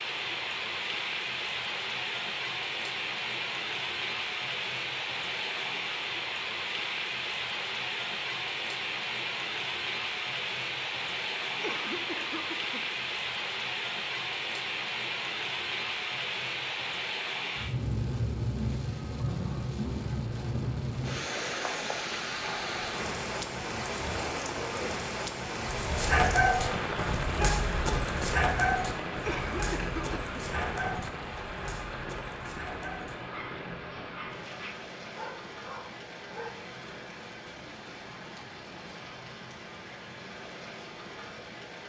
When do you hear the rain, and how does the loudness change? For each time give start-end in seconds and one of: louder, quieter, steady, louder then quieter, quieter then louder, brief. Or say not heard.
0.0-41.8 quieter.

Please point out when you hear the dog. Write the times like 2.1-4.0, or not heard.
25.6-36.6.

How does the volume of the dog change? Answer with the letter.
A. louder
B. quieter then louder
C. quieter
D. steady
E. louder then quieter
C.